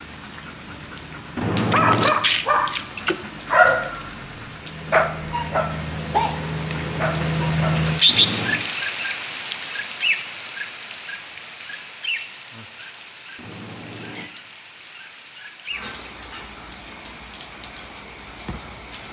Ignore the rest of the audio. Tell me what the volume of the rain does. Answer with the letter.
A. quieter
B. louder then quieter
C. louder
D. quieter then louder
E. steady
B.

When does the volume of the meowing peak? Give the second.
2 s.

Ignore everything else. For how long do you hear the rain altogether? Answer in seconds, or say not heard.
19 s.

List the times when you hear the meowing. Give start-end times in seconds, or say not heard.
1.4-2.1, 8.1-8.7, 13.3-14.3.